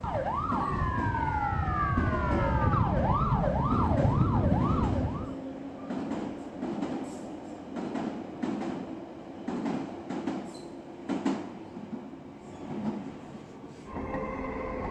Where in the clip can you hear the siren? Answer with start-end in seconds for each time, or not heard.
0.0-5.3.